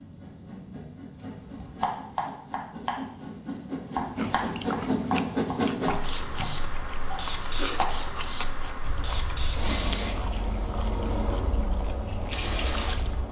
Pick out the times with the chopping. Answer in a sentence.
The chopping can be heard from 1.4 to 7.9 s.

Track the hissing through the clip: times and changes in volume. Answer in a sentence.
The hissing can be heard from 0.0 to 13.2 s, getting louder.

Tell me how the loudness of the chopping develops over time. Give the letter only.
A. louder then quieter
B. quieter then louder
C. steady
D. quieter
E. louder
D.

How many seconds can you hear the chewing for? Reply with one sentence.
You can hear the chewing for 9 seconds altogether.